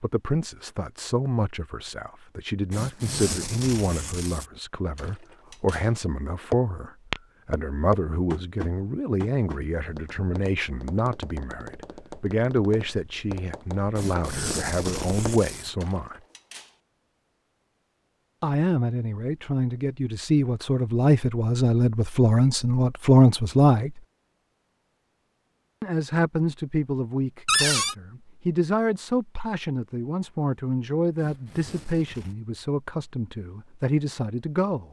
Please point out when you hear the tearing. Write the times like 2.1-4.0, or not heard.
2.7-4.5, 13.9-15.7, 31.1-32.4.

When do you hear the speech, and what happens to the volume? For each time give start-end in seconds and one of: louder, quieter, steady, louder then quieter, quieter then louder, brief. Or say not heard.
0.0-16.2 steady
18.4-24.0 louder
25.8-34.8 steady.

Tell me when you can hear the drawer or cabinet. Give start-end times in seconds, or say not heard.
5.0-6.0, 15.8-16.8, 27.4-27.9.